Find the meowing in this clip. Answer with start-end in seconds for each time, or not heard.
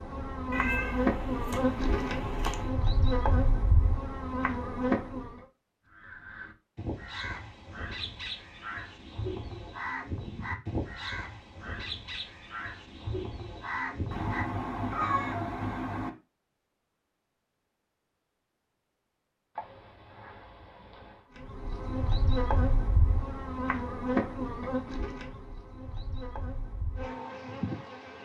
0.5-2.8, 14.1-16.1, 19.6-21.2.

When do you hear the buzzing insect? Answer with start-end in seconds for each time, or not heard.
0.0-5.4, 21.4-28.2.